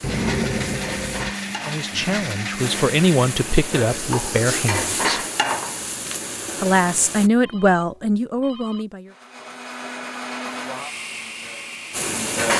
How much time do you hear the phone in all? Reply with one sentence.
You can hear the phone for 3 seconds altogether.